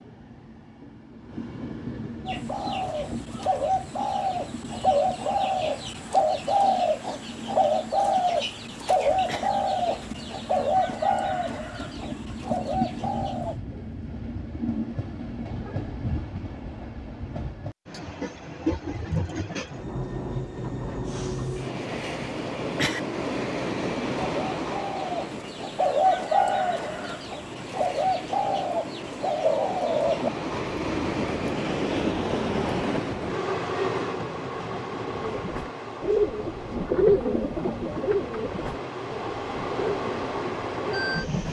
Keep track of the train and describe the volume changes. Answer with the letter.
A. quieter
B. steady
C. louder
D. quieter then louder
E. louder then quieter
C.